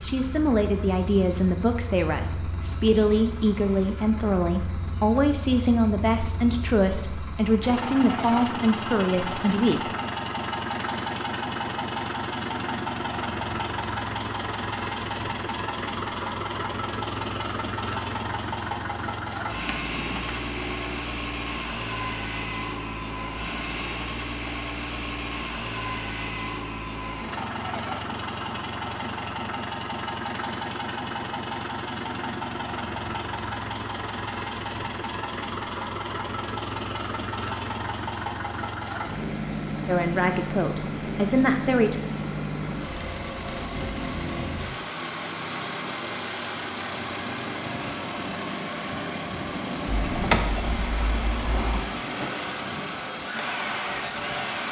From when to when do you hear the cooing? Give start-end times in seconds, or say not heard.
not heard.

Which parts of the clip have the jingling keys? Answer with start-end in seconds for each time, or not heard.
19.6-21.0, 50.1-51.8.